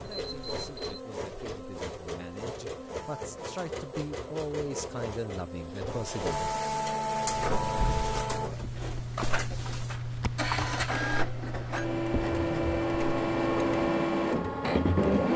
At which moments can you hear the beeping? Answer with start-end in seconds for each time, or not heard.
0.1-1.0.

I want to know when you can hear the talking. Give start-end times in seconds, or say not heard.
0.0-6.4.